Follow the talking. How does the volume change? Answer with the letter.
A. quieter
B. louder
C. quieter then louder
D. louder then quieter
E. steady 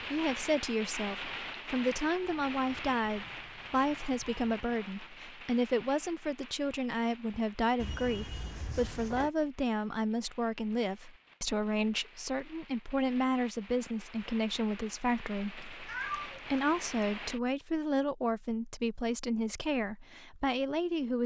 E.